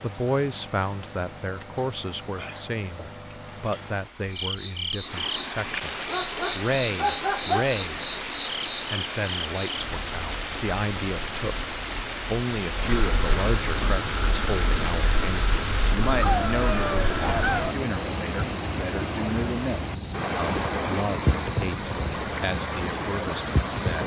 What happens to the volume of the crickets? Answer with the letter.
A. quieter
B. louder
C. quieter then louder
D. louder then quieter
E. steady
B.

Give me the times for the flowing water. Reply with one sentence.
You can hear the flowing water from 0.0 to 24.0 s.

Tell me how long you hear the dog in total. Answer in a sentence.
You can hear the dog for 3 seconds altogether.